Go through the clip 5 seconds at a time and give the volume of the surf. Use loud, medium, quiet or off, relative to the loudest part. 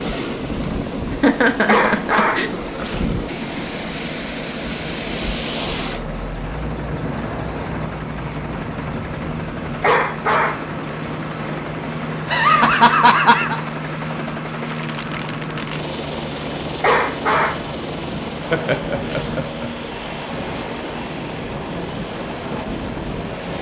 loud, loud, medium, medium, loud.